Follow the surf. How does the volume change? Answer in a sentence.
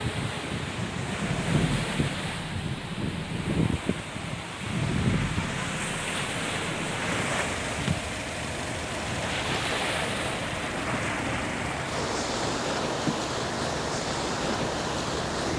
The loudness of the surf stays about the same.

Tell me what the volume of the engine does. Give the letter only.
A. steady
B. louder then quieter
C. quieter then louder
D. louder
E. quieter
A.